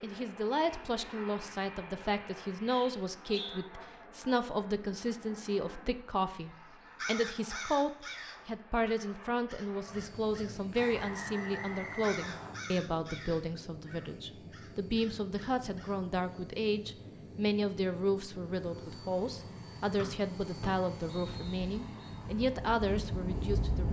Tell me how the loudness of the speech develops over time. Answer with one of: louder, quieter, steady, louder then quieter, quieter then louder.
steady.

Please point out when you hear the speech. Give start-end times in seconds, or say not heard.
0.0-23.8.